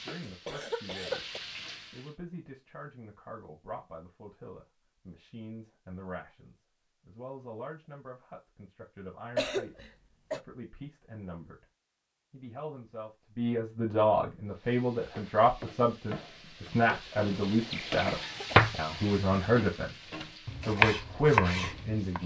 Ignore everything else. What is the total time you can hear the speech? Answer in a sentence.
You can hear the speech for 20 seconds altogether.